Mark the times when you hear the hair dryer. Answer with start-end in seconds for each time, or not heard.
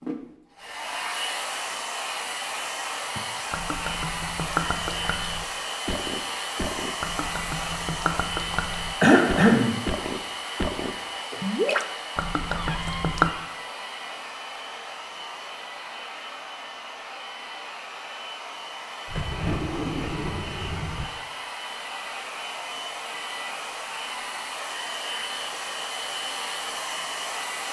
0.0-27.6.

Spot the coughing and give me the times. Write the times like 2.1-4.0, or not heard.
9.0-9.8.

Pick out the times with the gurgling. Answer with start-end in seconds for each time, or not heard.
3.5-13.3.